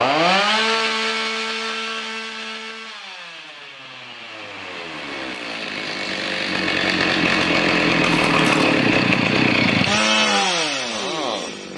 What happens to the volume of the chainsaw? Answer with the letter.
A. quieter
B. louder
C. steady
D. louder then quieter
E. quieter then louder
E.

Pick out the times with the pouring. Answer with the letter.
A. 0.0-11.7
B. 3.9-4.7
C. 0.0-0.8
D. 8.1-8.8
D.